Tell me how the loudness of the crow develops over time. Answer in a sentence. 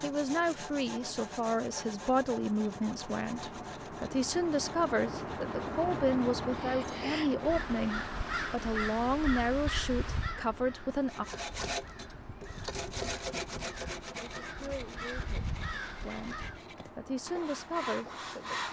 The loudness of the crow goes down, then up.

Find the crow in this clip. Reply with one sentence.
You can hear the crow from 6.5 to 16.6 s.